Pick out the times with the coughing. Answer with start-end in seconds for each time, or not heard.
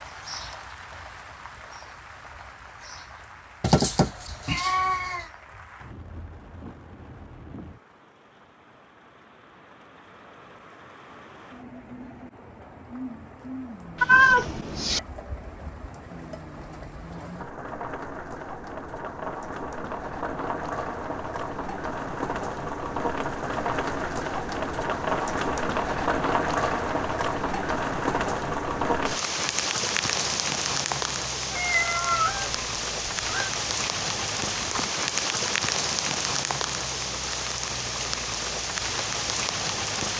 not heard.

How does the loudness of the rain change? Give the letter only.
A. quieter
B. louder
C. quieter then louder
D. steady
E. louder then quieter
B.